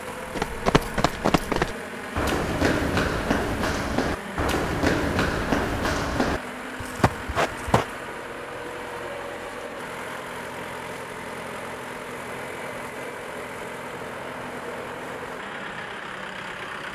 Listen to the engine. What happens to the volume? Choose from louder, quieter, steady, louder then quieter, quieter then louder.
steady.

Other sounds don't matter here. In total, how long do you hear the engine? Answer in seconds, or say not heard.
17 s.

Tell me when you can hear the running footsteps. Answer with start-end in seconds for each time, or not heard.
0.2-7.8.